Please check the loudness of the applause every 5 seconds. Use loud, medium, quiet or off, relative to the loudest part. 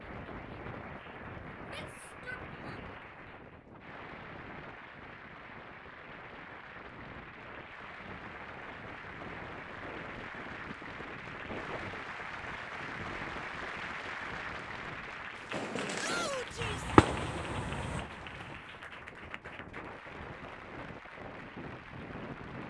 medium, medium, loud, loud, medium.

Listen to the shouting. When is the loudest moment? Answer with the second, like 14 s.
16 s.